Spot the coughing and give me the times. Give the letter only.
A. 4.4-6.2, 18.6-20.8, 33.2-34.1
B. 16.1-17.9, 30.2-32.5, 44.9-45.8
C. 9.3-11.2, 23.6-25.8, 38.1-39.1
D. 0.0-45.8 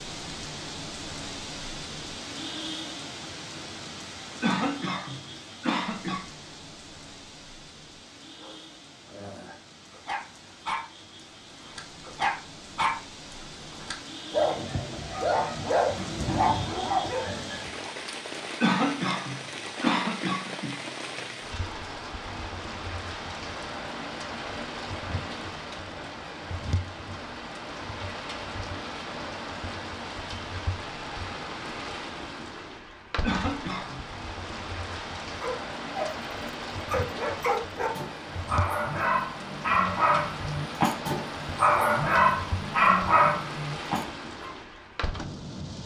A.